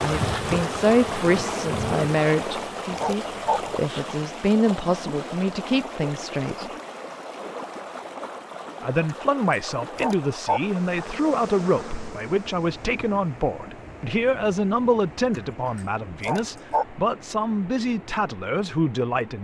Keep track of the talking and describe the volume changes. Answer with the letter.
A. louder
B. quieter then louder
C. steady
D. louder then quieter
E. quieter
C.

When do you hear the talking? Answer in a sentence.
The talking can be heard from 0.0 to 6.7 s and from 8.8 to 19.3 s.